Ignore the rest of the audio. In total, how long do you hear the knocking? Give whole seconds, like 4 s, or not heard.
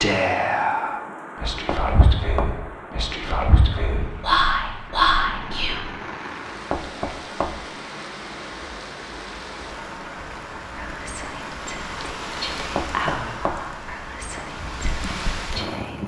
3 s.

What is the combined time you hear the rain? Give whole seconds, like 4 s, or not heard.
16 s.